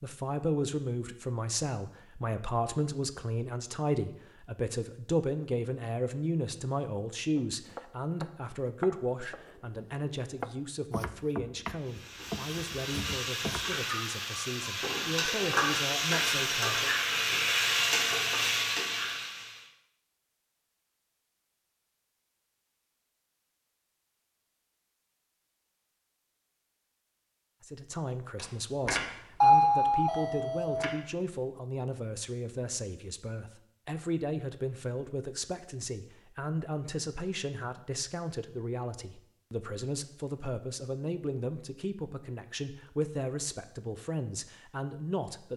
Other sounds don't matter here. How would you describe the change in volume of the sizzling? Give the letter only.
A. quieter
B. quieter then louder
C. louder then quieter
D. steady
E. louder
E.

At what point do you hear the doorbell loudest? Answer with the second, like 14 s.
30 s.